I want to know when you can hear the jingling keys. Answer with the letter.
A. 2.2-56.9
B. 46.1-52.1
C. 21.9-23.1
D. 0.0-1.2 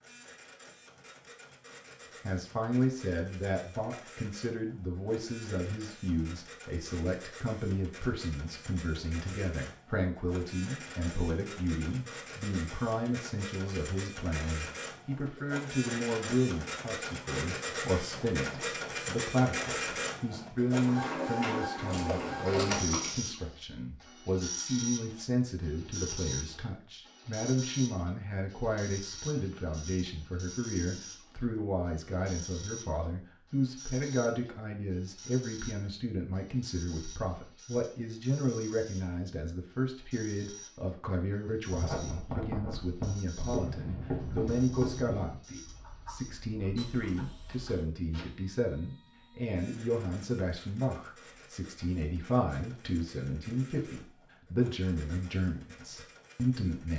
C.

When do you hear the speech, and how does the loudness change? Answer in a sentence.
The speech can be heard from 2.2 to 56.9 s, at a steady volume.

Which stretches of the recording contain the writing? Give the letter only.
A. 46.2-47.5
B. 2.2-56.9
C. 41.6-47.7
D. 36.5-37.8
C.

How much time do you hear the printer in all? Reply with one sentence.
You can hear the printer for 57 seconds altogether.